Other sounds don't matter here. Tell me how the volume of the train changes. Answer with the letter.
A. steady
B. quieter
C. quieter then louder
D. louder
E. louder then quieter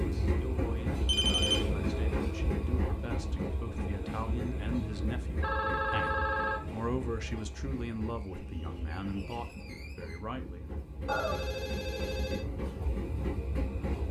C.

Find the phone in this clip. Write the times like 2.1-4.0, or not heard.
1.1-1.7, 5.4-6.8, 11.1-12.4.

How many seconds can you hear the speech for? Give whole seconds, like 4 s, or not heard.
11 s.